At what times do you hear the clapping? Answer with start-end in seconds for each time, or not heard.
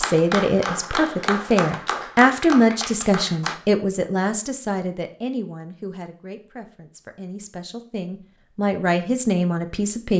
0.0-3.5.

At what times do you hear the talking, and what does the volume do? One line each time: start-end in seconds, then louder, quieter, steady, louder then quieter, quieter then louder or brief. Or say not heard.
0.0-10.1 quieter then louder.